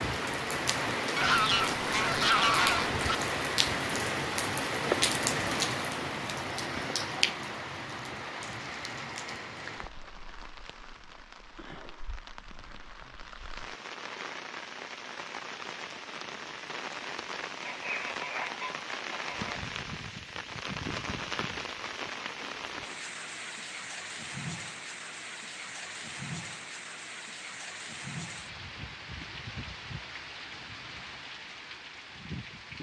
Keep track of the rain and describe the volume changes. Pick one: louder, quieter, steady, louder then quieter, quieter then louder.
quieter.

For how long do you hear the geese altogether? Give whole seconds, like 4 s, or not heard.
4 s.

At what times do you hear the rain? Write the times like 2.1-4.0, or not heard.
0.0-32.7.